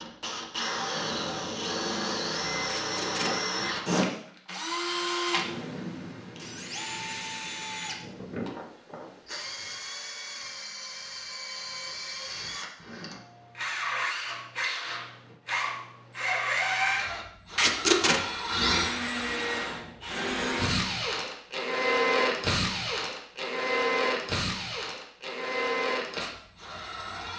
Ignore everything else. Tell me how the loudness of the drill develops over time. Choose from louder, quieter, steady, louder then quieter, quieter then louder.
quieter then louder.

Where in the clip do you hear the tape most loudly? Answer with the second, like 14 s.
18 s.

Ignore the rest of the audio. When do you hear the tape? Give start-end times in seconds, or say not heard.
2.6-3.3, 17.6-18.2.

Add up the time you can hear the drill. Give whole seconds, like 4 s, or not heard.
27 s.